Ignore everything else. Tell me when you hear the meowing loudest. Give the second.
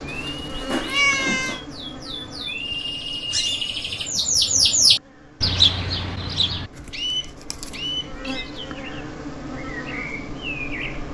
1 s.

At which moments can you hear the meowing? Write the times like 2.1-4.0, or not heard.
0.1-1.6, 6.8-8.7.